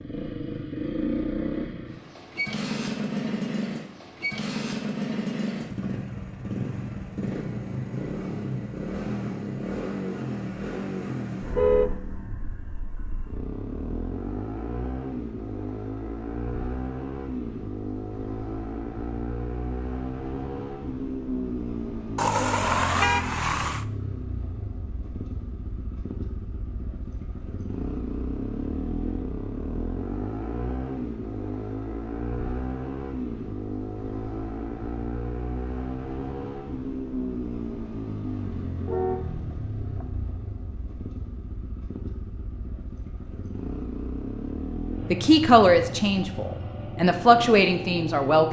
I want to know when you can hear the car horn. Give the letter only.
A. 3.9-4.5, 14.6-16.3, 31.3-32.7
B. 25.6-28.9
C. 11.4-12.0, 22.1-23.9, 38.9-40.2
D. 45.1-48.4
C.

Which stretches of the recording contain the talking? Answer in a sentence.
The talking can be heard from 45.1 to 48.4 s.